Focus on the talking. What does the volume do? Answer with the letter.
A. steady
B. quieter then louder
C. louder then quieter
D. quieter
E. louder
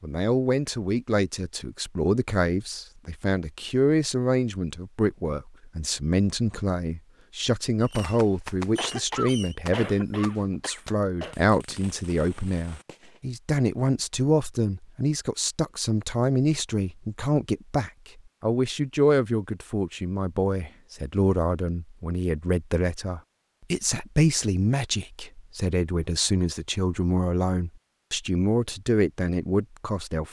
A.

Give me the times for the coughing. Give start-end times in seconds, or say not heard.
8.8-11.3.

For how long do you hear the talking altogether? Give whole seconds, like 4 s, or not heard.
30 s.